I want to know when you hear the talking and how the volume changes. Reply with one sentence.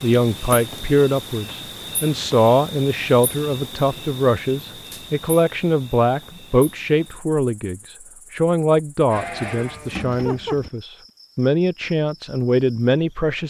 You can hear the talking from 0.0 to 13.4 s, at a steady volume.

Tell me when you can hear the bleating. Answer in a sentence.
The bleating can be heard from 9.1 to 10.7 s.